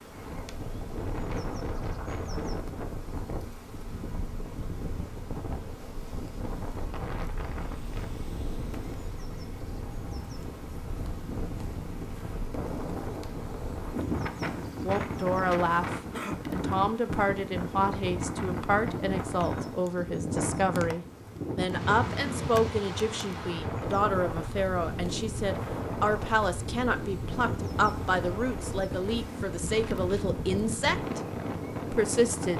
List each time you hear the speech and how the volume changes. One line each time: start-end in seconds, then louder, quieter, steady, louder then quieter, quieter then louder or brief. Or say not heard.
14.8-31.2 steady
31.9-32.5 brief.